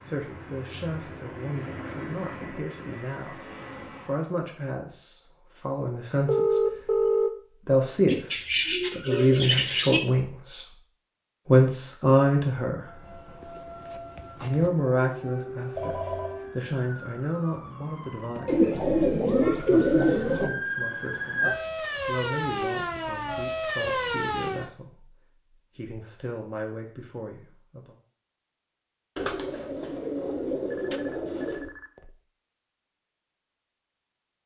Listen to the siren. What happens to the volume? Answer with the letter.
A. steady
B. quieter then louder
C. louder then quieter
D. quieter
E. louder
E.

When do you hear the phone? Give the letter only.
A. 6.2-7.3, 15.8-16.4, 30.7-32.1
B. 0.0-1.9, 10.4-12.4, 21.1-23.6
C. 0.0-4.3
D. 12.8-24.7
A.